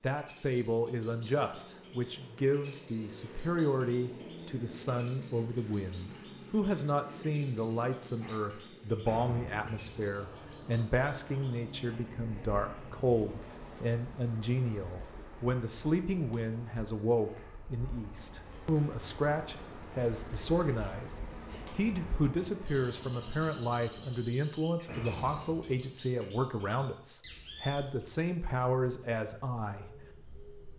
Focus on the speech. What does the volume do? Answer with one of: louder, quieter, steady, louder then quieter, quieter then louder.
steady.